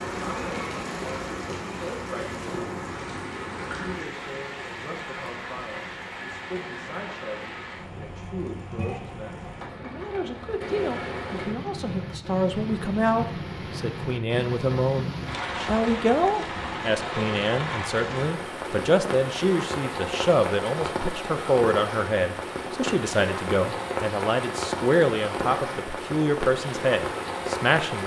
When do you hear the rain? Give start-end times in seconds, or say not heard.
0.0-28.0.